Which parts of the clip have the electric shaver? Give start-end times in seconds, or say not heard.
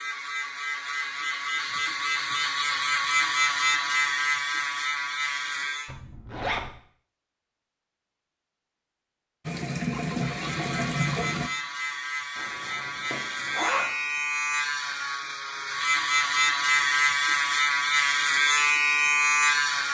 0.0-6.0, 10.2-19.8.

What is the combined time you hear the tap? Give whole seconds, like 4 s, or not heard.
2 s.